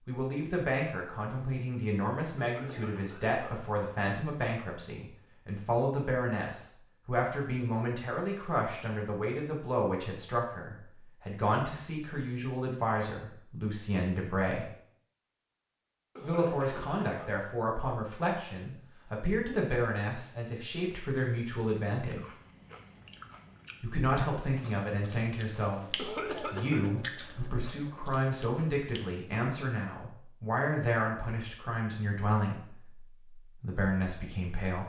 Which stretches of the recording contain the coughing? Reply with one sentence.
The coughing can be heard from 2.4 to 3.6 s, from 16.1 to 17.2 s and from 25.9 to 26.9 s.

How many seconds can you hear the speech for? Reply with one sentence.
The speech can be heard for 32 seconds in total.